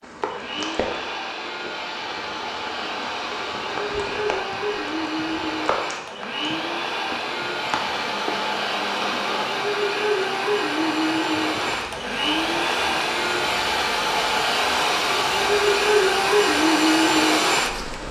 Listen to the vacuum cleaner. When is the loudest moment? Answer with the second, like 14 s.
18 s.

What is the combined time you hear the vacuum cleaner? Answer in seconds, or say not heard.
18 s.